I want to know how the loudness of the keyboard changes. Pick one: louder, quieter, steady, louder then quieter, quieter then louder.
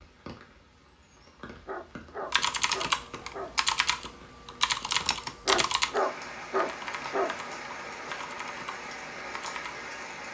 quieter.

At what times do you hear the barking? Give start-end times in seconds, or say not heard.
1.6-3.5, 5.5-7.3.